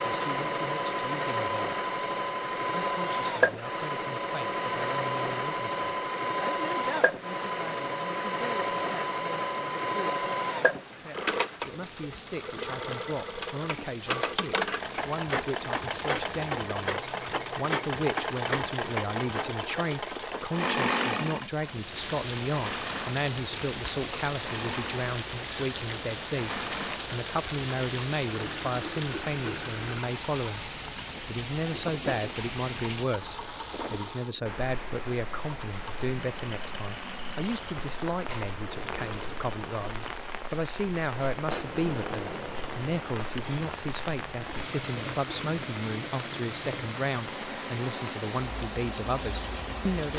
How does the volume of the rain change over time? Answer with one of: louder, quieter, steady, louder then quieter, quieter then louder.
louder.